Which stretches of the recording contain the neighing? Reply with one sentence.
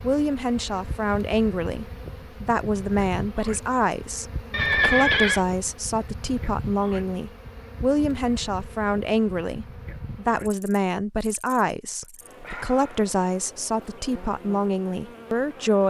You can hear the neighing from 4.5 to 5.4 s.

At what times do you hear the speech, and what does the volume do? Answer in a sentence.
The speech can be heard from 0.0 to 15.8 s, at a steady volume.